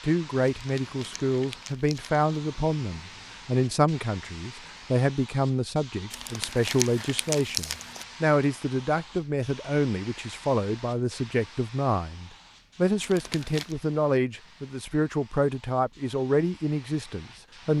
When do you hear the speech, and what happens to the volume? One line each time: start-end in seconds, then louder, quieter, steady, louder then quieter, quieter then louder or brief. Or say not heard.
0.0-17.7 steady.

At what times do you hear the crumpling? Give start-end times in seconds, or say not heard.
0.6-2.2, 6.1-8.1, 13.0-13.8.